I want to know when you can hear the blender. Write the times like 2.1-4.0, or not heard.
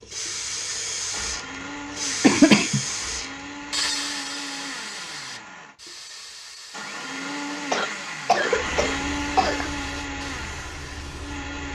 0.0-11.7.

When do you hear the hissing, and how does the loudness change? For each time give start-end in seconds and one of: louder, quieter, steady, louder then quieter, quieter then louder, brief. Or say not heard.
0.1-11.7 quieter.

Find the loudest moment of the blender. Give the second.
9 s.